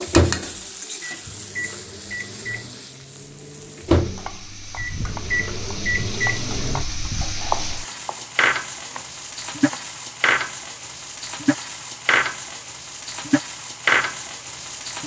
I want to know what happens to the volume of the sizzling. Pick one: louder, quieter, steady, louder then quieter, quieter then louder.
louder.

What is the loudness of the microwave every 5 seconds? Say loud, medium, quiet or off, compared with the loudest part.
loud, loud, off.